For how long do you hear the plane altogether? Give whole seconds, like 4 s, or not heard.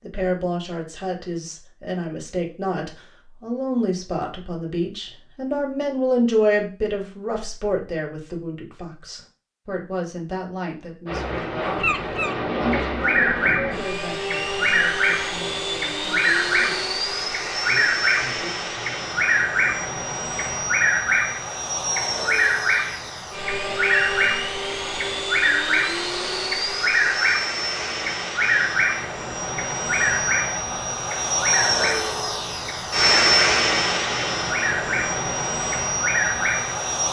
26 s.